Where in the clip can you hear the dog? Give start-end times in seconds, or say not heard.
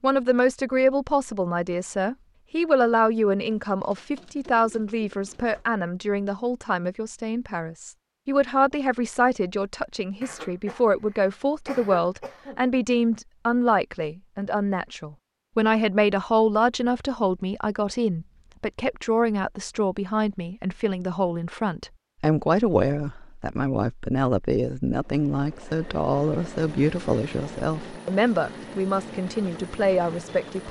not heard.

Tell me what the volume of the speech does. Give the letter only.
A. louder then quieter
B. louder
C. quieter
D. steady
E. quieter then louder
D.